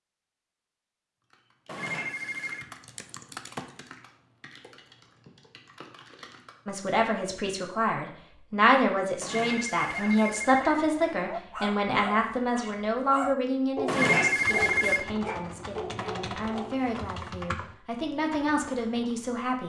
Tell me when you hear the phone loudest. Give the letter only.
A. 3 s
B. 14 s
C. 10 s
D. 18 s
B.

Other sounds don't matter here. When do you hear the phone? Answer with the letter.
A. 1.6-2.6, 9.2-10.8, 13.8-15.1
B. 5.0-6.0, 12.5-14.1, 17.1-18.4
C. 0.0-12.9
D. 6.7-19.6
A.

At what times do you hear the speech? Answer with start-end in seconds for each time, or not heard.
6.7-19.6.